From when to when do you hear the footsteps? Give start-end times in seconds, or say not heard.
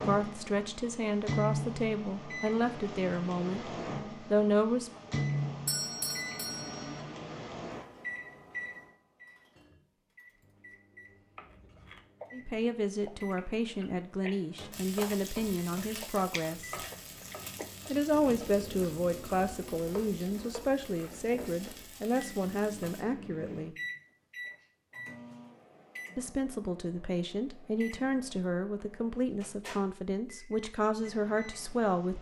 not heard.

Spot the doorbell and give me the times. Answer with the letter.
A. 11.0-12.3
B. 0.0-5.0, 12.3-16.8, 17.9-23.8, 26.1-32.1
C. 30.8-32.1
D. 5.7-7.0
D.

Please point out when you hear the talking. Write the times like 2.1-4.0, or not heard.
0.0-5.0, 12.3-16.8, 17.9-23.8, 26.1-32.1.